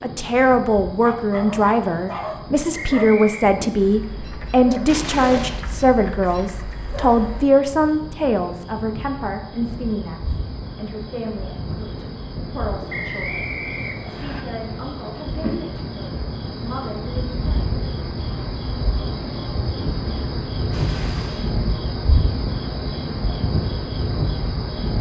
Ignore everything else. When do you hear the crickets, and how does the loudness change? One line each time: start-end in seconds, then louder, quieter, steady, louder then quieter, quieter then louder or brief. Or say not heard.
0.0-24.9 louder.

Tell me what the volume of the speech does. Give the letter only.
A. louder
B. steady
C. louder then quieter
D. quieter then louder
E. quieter
E.